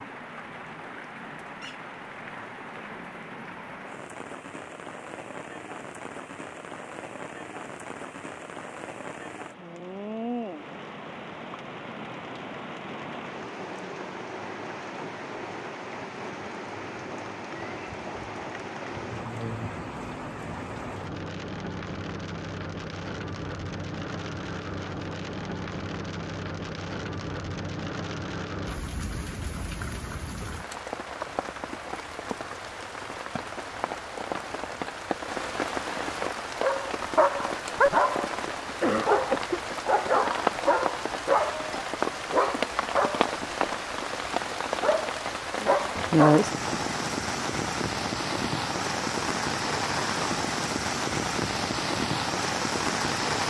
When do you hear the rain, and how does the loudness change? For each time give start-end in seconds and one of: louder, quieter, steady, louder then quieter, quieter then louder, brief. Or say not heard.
0.0-53.4 louder.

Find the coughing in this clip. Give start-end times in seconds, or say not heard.
38.8-39.8.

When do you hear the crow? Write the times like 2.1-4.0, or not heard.
not heard.